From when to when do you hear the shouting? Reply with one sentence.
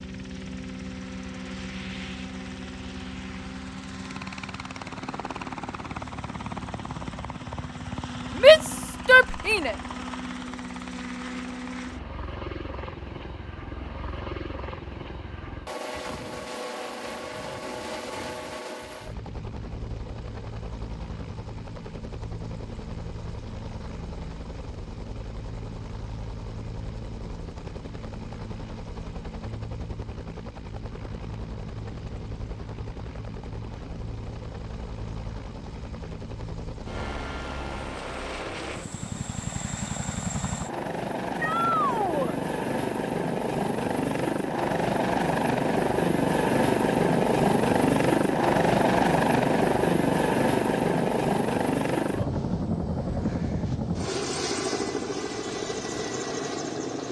You can hear the shouting from 8.4 to 9.8 s and from 41.4 to 42.4 s.